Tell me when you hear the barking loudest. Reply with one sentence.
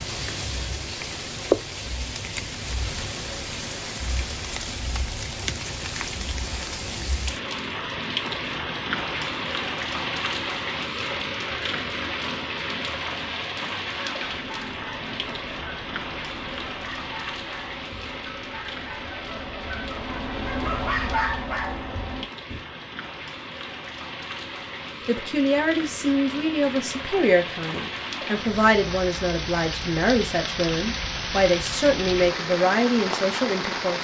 The volume of the barking peaks at 21 seconds.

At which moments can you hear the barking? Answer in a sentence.
You can hear the barking from 13.9 to 22.6 s.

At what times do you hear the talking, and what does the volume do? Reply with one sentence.
The talking can be heard from 25.1 to 33.9 s, at a steady volume.